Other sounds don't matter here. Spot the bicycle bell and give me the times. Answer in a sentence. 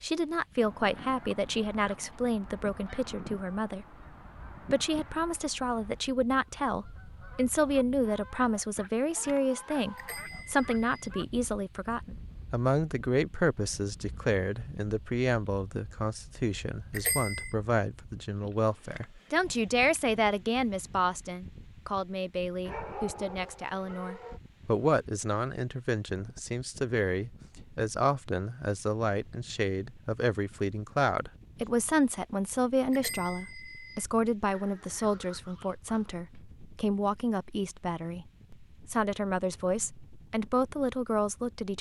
The bicycle bell can be heard from 9.9 to 11.1 s, from 16.9 to 17.5 s and from 32.9 to 34.0 s.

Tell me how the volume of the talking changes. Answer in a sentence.
The volume of the talking stays about the same.